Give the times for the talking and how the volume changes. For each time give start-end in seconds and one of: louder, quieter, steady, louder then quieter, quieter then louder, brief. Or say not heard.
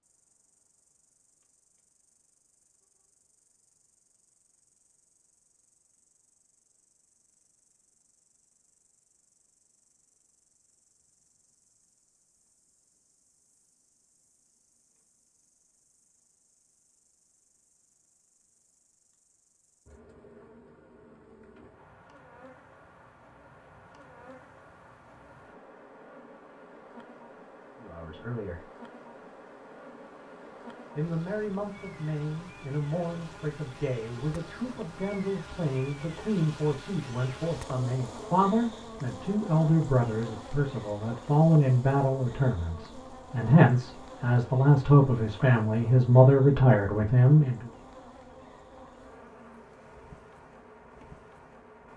27.8-28.6 brief
30.9-47.6 louder.